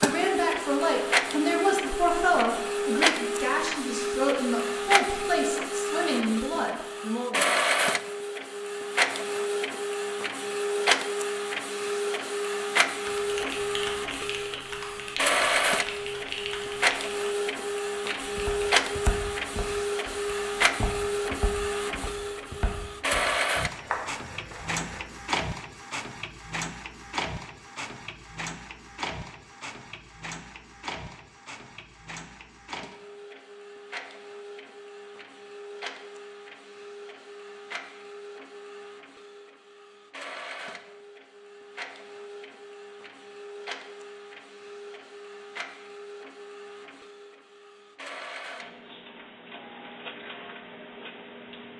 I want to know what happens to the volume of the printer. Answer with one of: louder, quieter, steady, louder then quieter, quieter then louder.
quieter.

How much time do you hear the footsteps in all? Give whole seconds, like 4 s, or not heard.
7 s.